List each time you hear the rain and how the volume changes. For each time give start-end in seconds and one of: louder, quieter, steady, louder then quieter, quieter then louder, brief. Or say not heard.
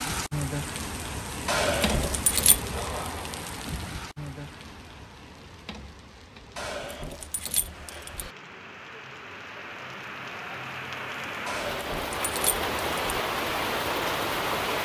0.0-14.8 quieter then louder.